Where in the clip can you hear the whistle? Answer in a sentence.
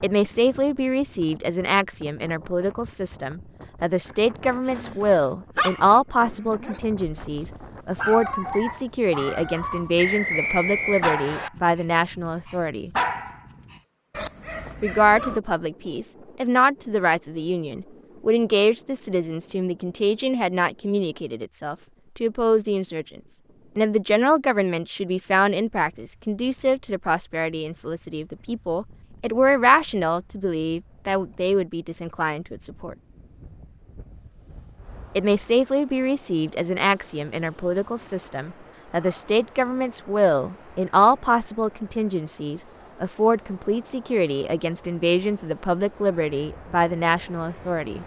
The whistle can be heard from 9.9 to 11.5 s.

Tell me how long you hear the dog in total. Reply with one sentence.
The dog can be heard for 11 seconds in total.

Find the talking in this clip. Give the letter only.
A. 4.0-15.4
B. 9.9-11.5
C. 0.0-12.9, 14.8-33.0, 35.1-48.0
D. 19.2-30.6
C.